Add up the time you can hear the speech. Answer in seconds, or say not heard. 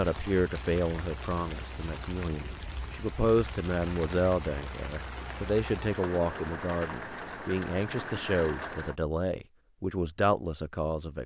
11 s.